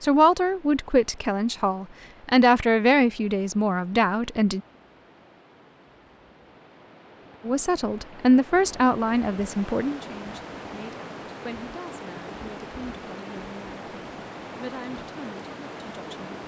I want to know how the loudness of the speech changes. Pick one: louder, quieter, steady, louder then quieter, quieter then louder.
quieter.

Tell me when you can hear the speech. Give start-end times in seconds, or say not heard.
0.0-4.6, 7.5-16.4.